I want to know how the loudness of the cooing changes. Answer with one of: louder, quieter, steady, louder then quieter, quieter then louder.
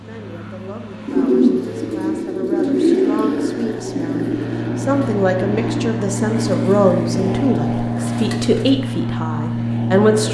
quieter.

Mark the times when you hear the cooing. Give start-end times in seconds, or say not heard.
1.1-8.8.